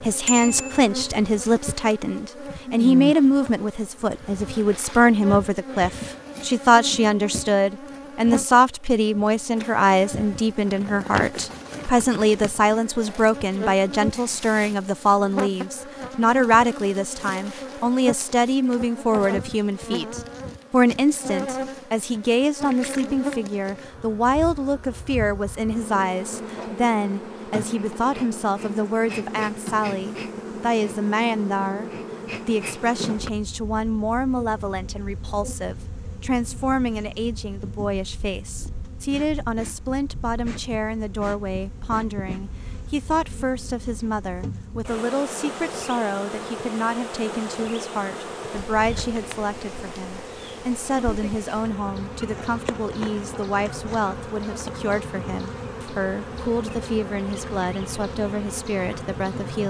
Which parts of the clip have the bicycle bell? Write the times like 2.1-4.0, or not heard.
0.2-0.8.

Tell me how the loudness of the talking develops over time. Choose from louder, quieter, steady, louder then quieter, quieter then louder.
quieter.